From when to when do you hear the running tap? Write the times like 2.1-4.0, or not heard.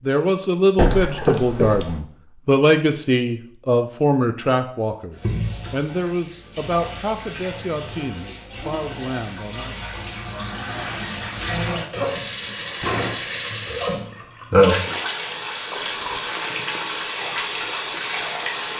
5.2-18.7.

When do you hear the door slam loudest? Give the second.
1 s.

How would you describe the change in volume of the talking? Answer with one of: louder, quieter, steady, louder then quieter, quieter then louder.
quieter.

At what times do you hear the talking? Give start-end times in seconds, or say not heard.
0.0-9.8.